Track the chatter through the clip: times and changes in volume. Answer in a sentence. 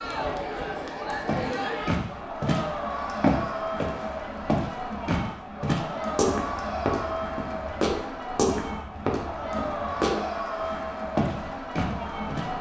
The chatter can be heard from 0.0 to 12.5 s, at a steady volume.